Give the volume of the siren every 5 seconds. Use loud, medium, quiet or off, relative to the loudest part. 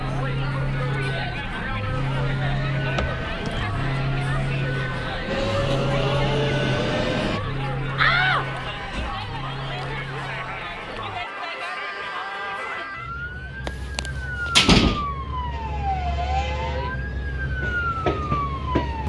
loud, loud, medium, loud.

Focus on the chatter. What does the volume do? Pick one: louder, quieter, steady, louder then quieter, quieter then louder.
quieter.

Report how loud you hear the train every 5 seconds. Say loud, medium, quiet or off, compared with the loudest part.
quiet, loud, off, medium.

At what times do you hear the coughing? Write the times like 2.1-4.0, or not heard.
not heard.